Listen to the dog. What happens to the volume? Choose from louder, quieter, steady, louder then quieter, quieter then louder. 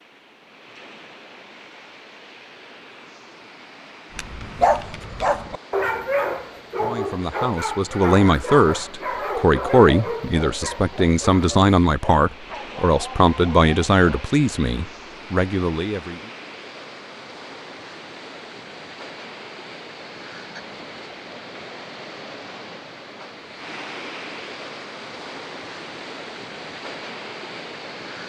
quieter.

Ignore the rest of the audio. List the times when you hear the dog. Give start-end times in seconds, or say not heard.
4.2-14.3.